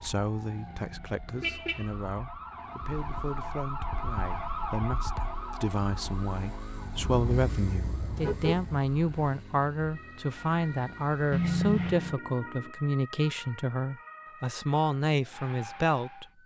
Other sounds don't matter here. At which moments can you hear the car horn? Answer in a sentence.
You can hear the car horn from 0.6 to 1.9 s, from 7.0 to 8.8 s and from 11.3 to 12.2 s.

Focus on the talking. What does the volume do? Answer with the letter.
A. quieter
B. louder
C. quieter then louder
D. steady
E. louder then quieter
B.